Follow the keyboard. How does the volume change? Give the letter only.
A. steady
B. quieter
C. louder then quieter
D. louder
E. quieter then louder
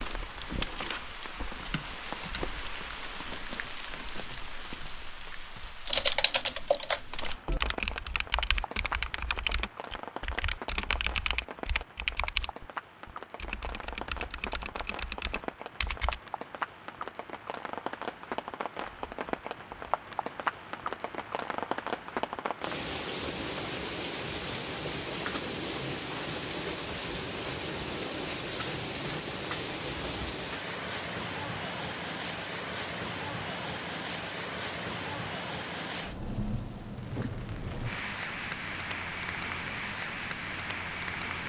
B.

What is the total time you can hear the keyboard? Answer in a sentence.
The keyboard can be heard for 10 seconds in total.